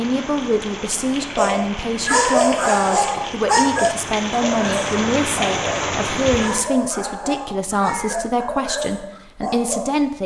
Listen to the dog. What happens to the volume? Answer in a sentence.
The loudness of the dog goes down.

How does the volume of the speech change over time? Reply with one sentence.
The volume of the speech stays about the same.